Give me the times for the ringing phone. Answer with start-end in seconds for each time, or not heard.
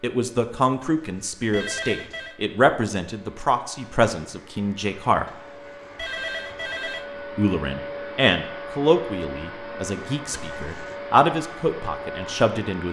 0.8-2.4, 5.2-7.0, 10.3-10.9.